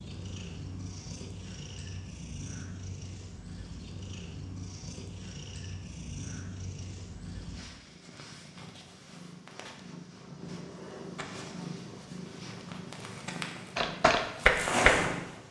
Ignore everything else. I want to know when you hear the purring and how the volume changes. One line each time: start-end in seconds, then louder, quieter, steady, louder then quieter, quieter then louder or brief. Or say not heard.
0.0-15.4 louder.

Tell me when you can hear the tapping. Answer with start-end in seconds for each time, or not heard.
13.8-15.1.